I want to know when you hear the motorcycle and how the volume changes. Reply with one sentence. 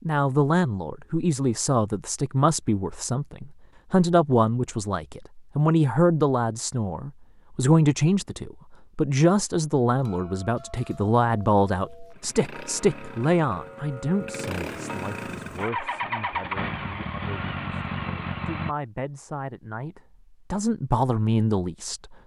The motorcycle can be heard from 12.1 to 18.8 s, getting louder.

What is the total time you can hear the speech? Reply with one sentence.
You can hear the speech for 22 seconds altogether.